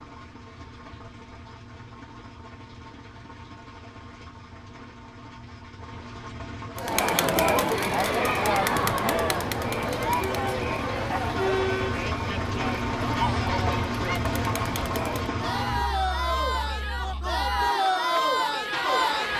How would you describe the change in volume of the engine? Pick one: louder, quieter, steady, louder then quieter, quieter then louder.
louder then quieter.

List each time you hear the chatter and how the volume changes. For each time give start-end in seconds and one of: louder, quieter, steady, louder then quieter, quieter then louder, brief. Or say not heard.
6.8-19.3 quieter then louder.